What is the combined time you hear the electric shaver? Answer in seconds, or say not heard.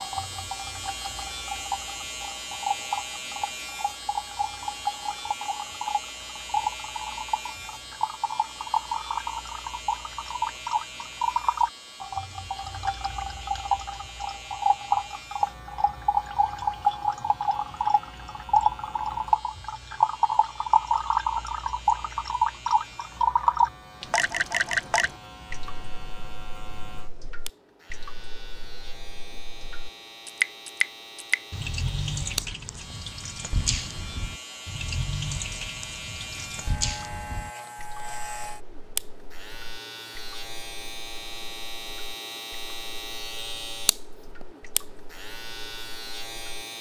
47 s.